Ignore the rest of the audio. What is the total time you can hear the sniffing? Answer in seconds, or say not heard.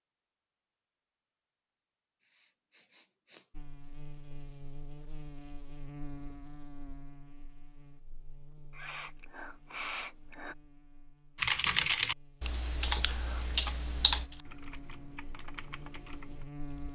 3 s.